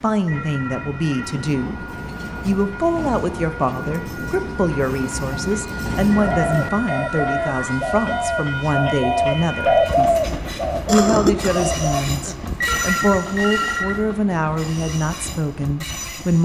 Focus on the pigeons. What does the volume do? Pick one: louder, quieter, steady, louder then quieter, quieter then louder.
louder then quieter.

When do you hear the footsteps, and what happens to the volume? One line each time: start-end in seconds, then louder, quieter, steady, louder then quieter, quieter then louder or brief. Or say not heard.
not heard.